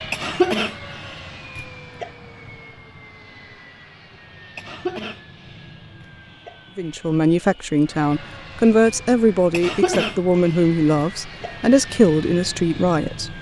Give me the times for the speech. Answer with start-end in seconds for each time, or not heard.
6.8-13.3.